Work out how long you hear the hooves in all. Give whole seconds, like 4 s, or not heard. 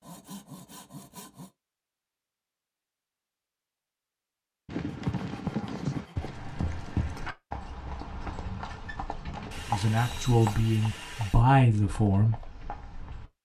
9 s.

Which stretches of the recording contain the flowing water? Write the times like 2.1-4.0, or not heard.
not heard.